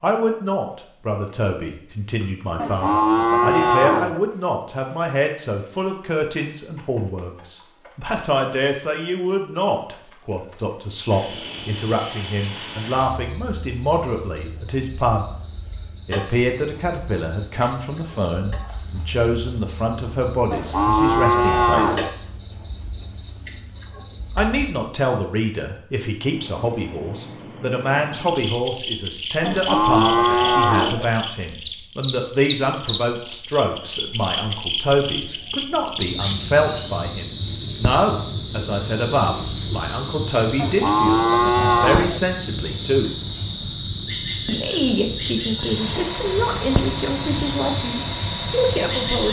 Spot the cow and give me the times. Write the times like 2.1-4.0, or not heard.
2.5-4.2, 20.5-22.1, 29.4-31.1, 40.5-42.2.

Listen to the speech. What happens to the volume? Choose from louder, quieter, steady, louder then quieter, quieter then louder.
steady.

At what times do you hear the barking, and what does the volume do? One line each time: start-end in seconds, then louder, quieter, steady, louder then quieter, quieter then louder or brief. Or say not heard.
not heard.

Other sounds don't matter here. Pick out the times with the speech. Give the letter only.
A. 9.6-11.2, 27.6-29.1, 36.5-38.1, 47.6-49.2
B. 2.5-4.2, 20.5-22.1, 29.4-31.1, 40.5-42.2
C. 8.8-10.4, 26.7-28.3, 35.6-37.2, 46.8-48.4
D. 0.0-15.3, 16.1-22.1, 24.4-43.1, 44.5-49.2
D.